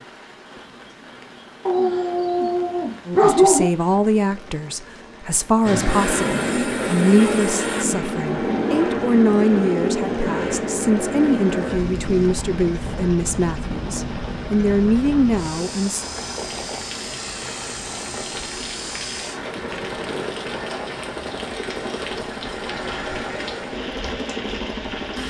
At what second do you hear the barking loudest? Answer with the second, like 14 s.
3 s.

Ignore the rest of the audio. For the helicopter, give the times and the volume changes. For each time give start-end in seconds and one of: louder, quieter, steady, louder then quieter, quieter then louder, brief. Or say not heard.
5.6-25.2 quieter.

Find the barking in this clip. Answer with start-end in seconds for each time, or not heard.
1.6-3.6.